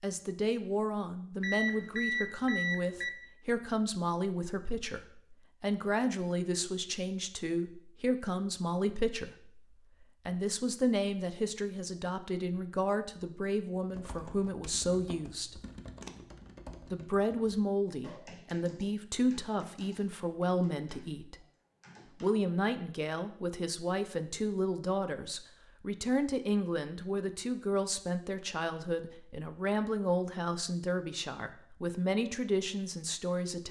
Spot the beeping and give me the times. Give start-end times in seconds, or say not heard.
1.4-3.1.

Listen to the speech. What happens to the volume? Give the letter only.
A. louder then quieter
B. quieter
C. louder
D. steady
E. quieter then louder
D.